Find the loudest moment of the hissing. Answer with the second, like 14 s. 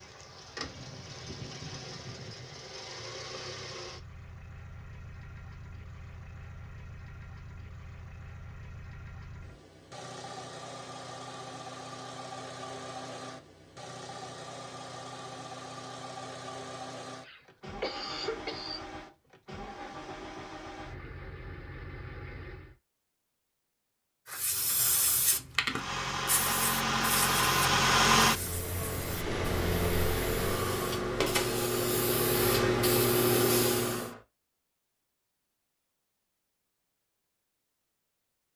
33 s.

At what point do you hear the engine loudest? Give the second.
28 s.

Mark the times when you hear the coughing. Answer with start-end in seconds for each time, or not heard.
17.2-18.8.